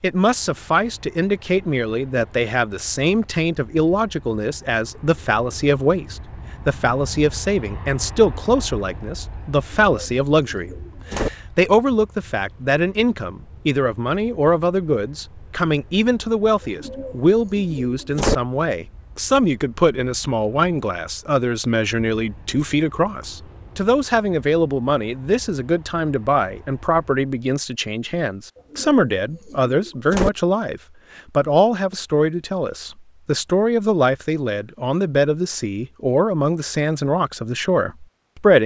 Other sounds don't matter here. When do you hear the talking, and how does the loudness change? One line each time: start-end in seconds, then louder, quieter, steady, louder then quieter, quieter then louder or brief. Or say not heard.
0.0-38.6 steady.